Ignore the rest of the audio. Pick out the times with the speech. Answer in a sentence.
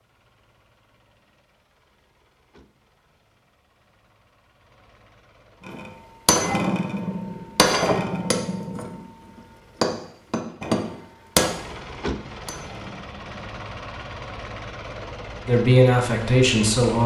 The speech can be heard from 15.4 to 17.0 s.